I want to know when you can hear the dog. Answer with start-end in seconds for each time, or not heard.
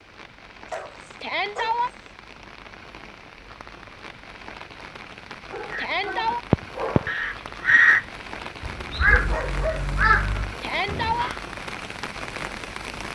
0.7-1.8, 5.5-7.2, 9.1-10.6.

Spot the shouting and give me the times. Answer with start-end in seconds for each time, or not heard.
1.2-1.9, 5.8-6.4, 10.6-11.3.